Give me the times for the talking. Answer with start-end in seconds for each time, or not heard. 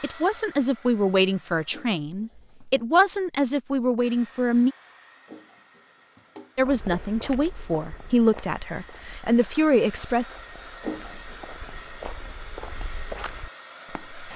0.0-4.8, 6.5-10.3.